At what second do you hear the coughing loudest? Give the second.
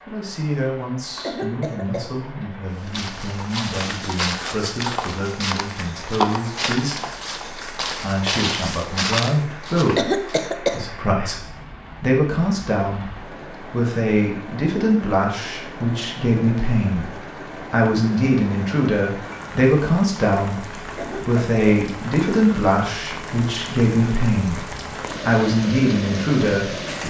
10 s.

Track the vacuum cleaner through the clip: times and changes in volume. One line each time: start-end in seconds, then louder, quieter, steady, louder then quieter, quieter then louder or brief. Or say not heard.
not heard.